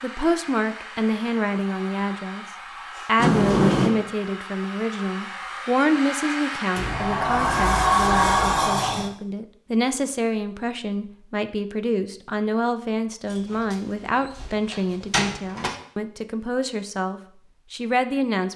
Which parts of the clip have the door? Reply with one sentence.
The door can be heard from 3.1 to 3.9 s, from 6.8 to 9.1 s and from 13.3 to 15.7 s.